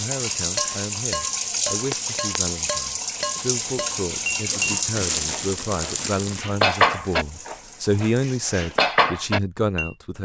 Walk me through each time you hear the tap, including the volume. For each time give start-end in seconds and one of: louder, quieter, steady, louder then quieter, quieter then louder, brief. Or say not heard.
0.0-8.8 quieter.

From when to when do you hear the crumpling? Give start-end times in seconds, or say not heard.
4.5-6.5.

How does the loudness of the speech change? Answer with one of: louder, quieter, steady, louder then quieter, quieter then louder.
louder.